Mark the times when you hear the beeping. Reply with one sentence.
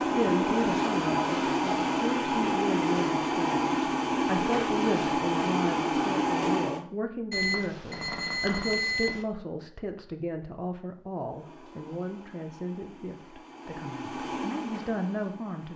The beeping can be heard from 7.3 to 9.2 s.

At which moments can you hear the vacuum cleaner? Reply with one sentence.
You can hear the vacuum cleaner from 0.0 to 6.8 s and from 11.2 to 15.7 s.